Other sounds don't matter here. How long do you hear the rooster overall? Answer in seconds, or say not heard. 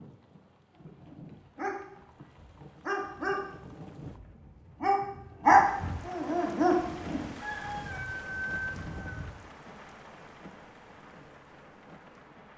2 s.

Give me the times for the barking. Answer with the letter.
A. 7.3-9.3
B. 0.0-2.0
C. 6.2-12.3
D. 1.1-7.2
D.